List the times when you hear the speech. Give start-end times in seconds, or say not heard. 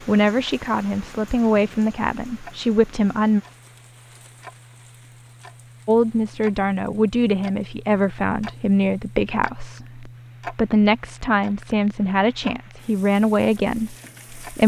0.1-3.4, 5.8-14.6.